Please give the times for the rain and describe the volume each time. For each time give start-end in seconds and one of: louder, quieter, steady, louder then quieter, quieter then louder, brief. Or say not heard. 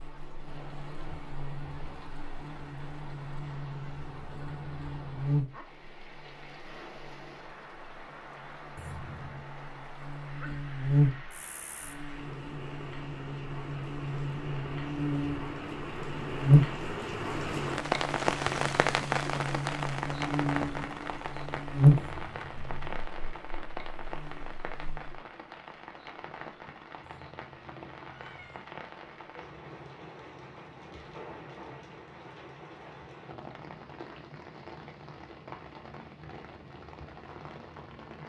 0.0-38.2 louder then quieter.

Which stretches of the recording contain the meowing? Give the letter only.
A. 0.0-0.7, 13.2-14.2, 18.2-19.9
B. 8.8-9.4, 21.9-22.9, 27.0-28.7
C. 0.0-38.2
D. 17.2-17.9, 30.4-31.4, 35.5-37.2
B.